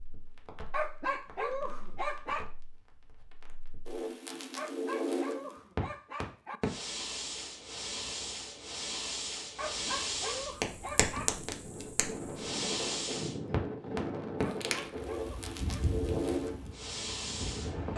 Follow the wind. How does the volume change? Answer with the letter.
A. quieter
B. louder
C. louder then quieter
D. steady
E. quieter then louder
B.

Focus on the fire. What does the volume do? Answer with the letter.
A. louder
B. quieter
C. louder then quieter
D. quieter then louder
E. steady
A.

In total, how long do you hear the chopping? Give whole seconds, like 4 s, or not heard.
not heard.